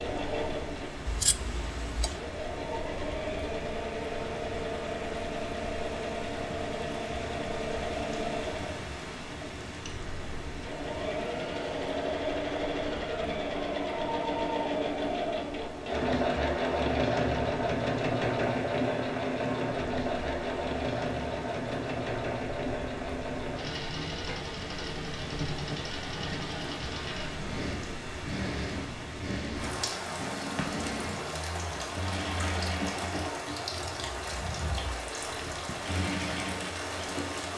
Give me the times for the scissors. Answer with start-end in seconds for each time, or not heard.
1.1-2.2.